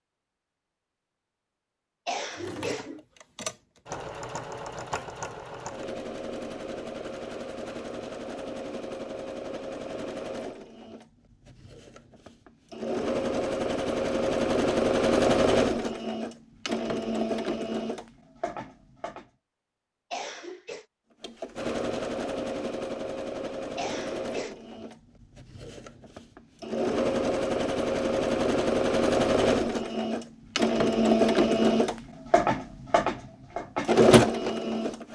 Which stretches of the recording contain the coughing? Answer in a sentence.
You can hear the coughing from 2.0 to 3.0 s, from 20.1 to 20.9 s and from 23.8 to 24.6 s.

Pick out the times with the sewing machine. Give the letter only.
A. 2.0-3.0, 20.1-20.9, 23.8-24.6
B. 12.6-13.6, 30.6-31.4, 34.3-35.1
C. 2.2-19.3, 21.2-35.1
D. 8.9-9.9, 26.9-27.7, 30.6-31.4
C.